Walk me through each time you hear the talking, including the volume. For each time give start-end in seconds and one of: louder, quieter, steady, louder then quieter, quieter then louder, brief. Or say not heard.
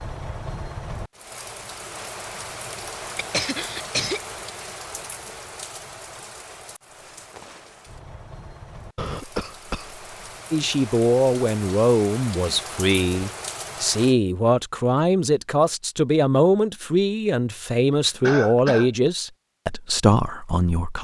10.5-20.9 steady.